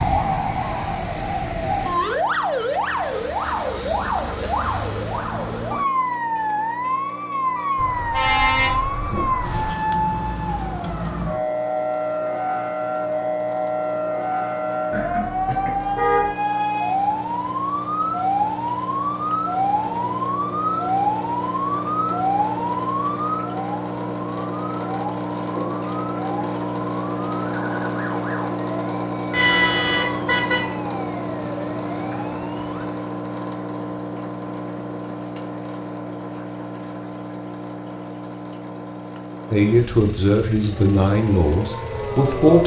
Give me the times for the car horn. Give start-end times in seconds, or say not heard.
7.8-9.7, 14.9-16.3, 29.3-30.6.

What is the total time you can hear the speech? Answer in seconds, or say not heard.
3 s.